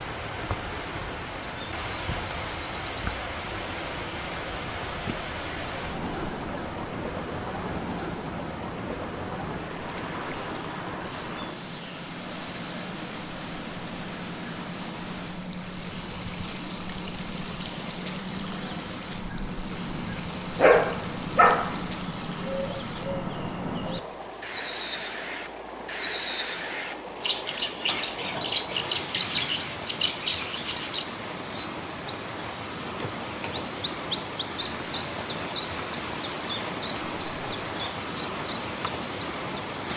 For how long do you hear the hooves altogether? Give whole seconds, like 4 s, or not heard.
not heard.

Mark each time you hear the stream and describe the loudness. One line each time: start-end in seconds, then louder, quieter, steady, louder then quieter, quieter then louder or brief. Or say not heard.
0.0-39.9 quieter then louder.